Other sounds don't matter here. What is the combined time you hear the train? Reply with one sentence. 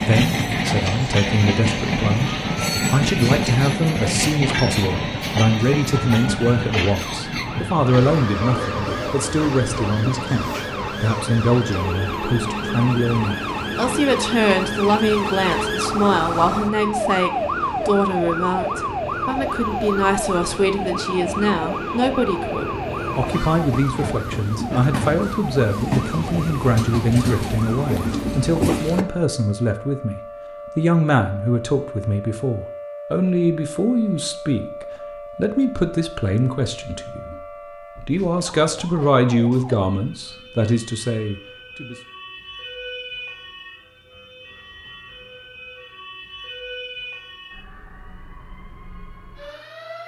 You can hear the train for 29 seconds altogether.